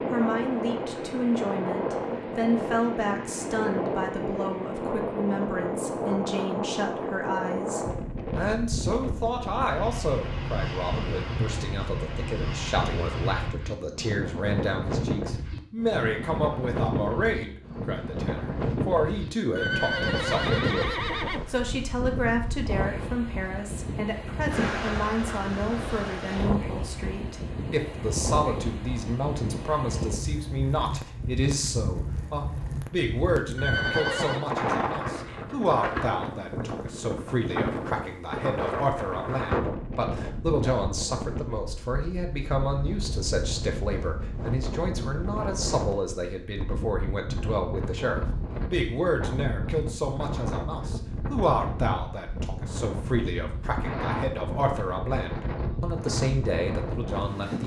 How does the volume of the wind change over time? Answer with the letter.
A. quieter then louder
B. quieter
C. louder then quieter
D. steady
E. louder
D.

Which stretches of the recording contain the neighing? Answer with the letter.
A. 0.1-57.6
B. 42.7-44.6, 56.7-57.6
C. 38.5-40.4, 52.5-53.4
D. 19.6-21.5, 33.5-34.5
D.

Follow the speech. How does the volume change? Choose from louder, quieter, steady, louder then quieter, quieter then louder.
steady.